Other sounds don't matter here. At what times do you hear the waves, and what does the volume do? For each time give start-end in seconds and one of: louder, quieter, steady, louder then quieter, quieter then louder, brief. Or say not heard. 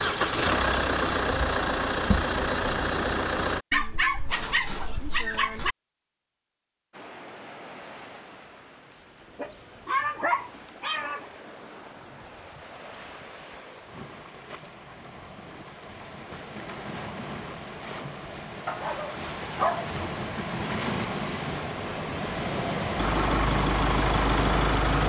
6.9-25.0 louder.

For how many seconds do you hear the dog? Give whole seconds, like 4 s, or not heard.
6 s.